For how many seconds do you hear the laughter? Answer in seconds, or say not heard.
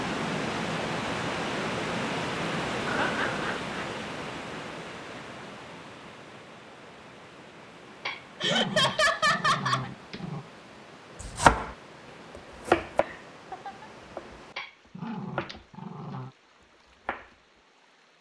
3 s.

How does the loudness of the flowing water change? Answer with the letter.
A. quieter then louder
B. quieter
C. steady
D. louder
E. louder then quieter
B.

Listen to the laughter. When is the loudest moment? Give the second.
9 s.